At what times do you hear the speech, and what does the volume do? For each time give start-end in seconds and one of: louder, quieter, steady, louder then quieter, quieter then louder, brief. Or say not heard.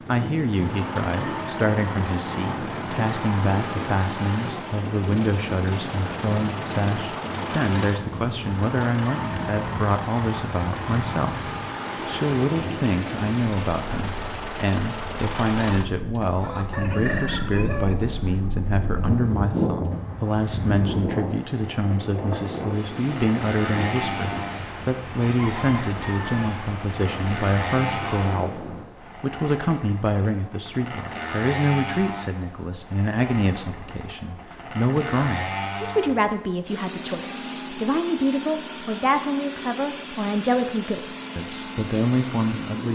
0.1-42.9 steady.